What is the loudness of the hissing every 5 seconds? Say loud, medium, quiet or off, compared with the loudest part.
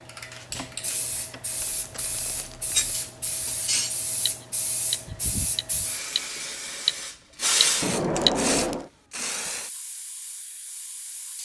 medium, loud, quiet.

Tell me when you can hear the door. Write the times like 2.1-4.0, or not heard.
0.5-1.4, 7.8-8.9.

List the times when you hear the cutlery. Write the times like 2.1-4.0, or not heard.
2.8-4.3, 4.9-8.3.